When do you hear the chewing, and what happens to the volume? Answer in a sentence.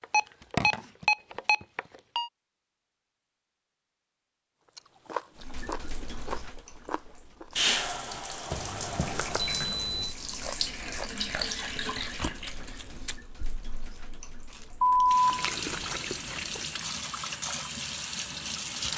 The chewing can be heard briefly from 4.8 to 7.5 s; and from 10.2 to 16.9 s, getting quieter then louder.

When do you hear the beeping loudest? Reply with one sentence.
The loudest moment of the beeping is at 15 seconds.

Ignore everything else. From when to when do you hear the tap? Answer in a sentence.
You can hear the tap from 5.3 to 18.9 s.